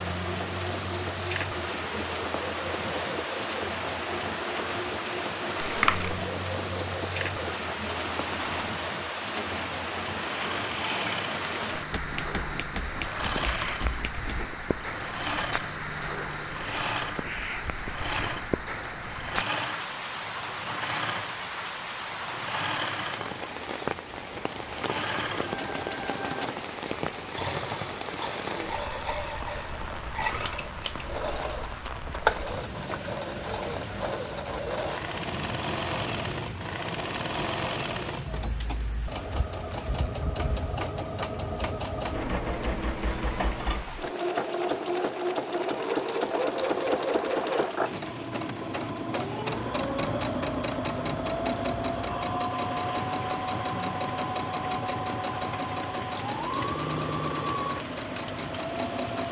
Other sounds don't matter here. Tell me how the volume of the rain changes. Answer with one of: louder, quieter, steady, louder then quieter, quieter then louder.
quieter.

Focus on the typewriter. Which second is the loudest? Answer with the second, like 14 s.
13 s.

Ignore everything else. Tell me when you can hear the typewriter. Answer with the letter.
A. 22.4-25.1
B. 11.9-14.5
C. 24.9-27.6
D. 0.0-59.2
B.